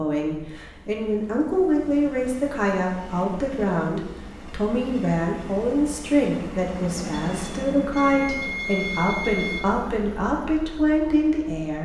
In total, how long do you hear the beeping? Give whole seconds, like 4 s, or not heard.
2 s.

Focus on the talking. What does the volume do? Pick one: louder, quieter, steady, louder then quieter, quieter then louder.
steady.